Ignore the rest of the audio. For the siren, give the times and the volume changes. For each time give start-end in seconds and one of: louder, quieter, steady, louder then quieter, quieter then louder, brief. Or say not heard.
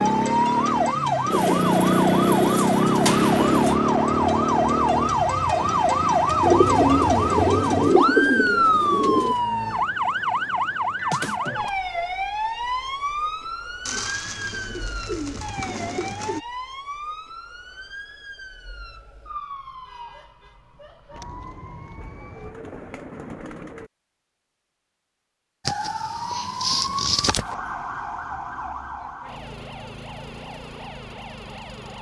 0.0-22.6 quieter
25.6-31.9 quieter.